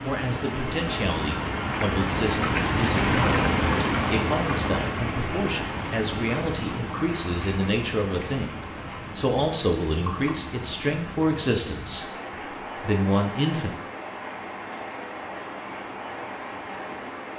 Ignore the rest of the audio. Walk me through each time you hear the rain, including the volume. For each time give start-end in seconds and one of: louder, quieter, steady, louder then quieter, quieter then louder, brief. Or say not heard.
0.0-17.3 quieter.